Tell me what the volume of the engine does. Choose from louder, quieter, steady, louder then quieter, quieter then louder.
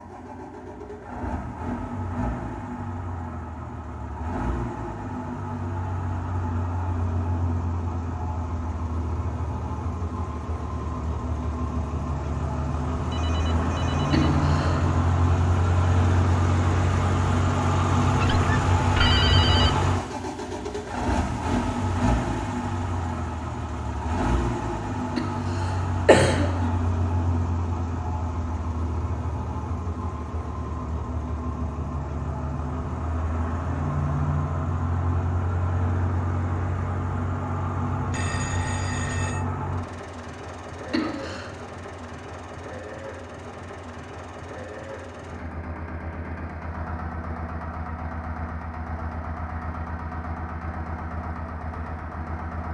louder then quieter.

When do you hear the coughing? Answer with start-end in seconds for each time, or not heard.
14.1-14.9, 25.1-26.7, 40.9-41.5.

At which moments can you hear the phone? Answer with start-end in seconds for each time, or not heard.
13.1-15.2, 18.1-19.7, 38.1-39.5.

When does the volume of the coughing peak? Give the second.
26 s.